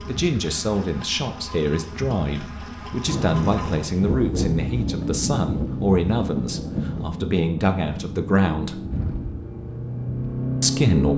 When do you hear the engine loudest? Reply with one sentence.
The volume of the engine peaks at 11 seconds.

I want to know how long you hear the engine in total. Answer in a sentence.
You can hear the engine for 11 seconds altogether.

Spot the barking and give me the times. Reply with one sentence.
The barking can't be heard in this clip.